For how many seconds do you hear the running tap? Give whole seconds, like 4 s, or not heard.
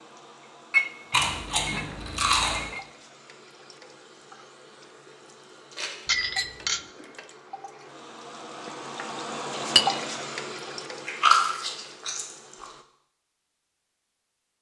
13 s.